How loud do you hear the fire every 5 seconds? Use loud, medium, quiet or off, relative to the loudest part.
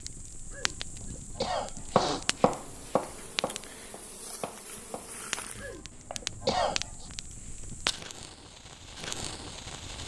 medium, loud.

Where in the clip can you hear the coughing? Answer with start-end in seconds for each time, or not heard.
0.5-2.2, 5.5-7.1.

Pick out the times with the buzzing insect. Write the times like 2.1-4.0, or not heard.
2.5-5.8.